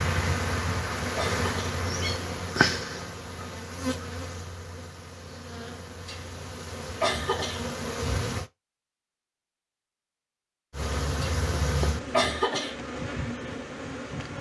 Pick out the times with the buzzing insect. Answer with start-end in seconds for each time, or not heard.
0.0-8.5, 10.7-14.3.